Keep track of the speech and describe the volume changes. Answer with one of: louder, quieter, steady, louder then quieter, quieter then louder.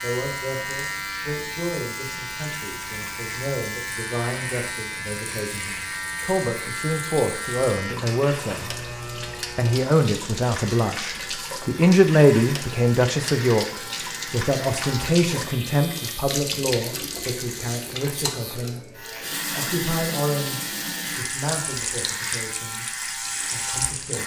louder then quieter.